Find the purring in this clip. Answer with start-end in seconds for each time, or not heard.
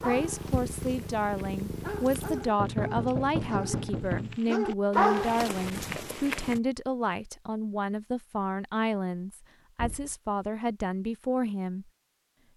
0.0-2.5.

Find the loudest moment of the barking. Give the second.
5 s.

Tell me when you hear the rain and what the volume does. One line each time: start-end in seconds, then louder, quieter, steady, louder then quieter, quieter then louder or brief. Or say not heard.
not heard.